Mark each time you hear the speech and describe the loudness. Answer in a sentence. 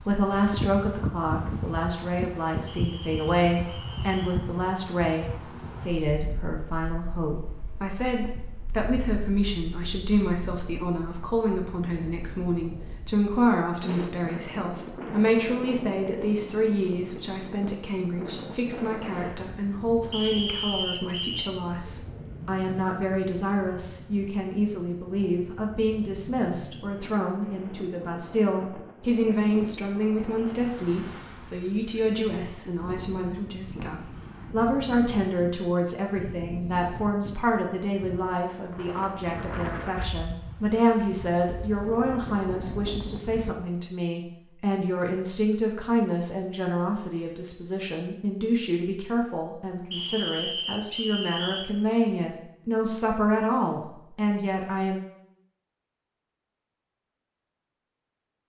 The speech can be heard from 0.1 to 55.0 s, at a steady volume.